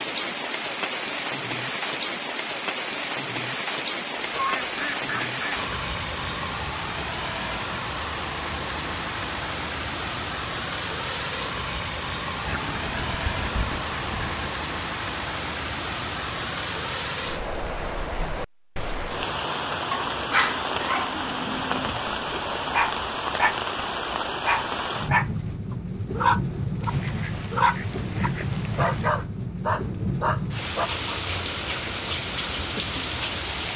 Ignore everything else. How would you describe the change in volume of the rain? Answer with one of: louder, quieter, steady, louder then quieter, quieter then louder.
steady.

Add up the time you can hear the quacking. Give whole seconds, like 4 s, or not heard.
6 s.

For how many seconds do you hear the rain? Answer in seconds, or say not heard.
34 s.